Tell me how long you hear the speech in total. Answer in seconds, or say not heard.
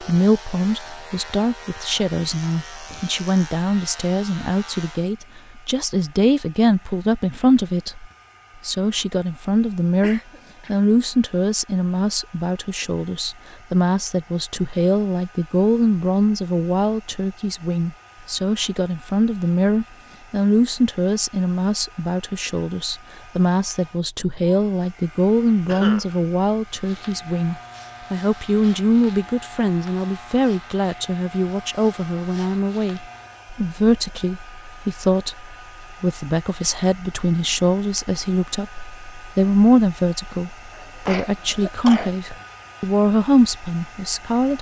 44 s.